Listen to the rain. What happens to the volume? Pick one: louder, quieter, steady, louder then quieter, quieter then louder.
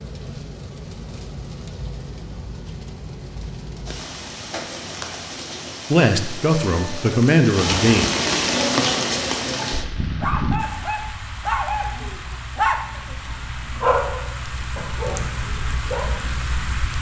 louder then quieter.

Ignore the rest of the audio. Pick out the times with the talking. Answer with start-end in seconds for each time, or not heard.
5.9-8.1.